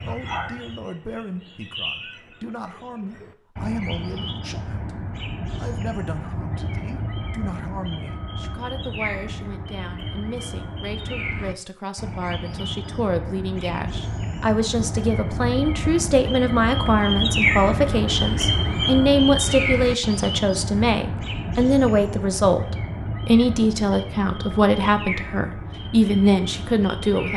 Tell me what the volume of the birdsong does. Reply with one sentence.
The volume of the birdsong goes up, then down.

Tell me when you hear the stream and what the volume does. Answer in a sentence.
You can't hear the stream here.